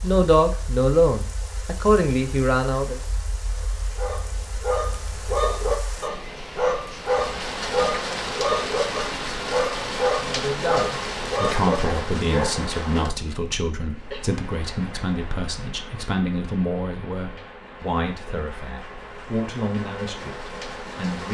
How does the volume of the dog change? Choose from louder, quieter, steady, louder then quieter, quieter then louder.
steady.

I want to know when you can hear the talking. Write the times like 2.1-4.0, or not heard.
0.0-3.0, 10.2-21.2.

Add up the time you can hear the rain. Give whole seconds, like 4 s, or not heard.
21 s.